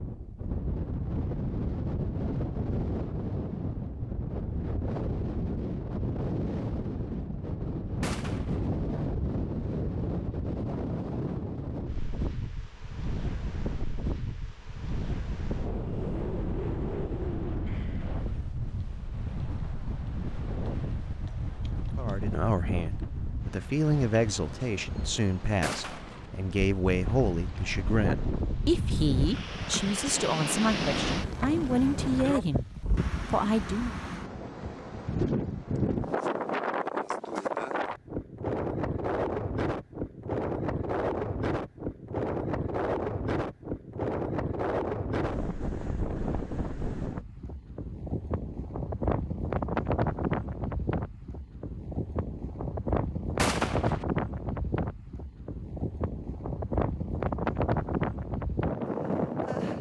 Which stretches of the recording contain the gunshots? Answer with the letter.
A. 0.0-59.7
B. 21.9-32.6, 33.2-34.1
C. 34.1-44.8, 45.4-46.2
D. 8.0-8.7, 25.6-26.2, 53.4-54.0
D.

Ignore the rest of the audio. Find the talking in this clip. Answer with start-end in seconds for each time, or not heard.
21.9-32.6, 33.2-34.1.